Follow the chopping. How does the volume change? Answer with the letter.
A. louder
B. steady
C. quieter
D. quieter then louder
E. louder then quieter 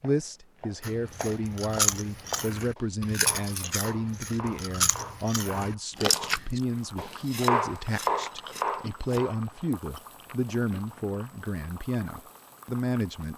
A.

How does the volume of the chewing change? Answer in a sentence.
The volume of the chewing goes down.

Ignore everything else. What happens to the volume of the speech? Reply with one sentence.
The loudness of the speech stays about the same.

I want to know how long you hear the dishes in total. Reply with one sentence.
The dishes can't be heard in this clip.